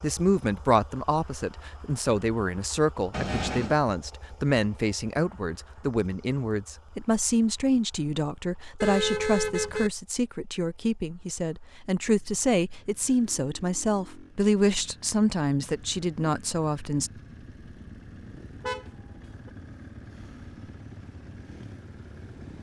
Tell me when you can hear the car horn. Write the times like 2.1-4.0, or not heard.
3.1-3.8, 8.8-9.9, 18.6-19.5.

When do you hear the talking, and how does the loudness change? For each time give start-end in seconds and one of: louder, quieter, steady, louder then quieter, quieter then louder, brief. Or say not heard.
0.0-17.1 steady.